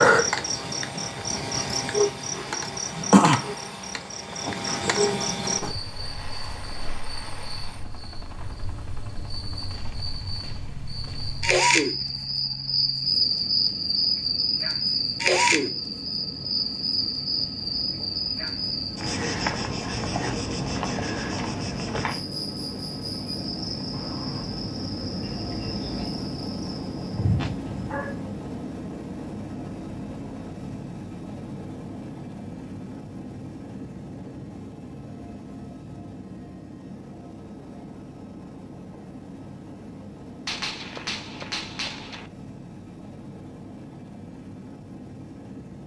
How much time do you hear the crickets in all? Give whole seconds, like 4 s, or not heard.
28 s.